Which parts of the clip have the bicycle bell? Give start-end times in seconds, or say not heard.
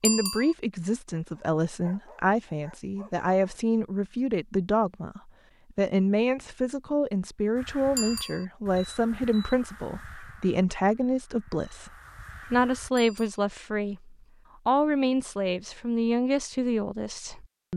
0.1-0.6, 8.0-8.4, 12.9-13.3.